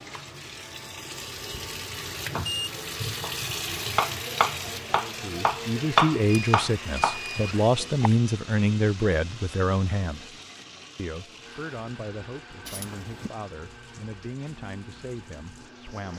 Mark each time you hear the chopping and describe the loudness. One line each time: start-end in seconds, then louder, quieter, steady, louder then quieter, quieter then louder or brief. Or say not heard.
2.4-8.1 louder then quieter.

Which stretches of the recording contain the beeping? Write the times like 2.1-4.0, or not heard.
2.5-3.0, 6.2-7.5, 12.7-13.3.